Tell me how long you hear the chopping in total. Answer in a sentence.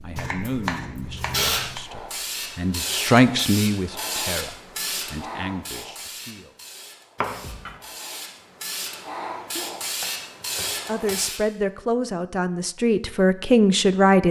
You can hear the chopping for 4 seconds altogether.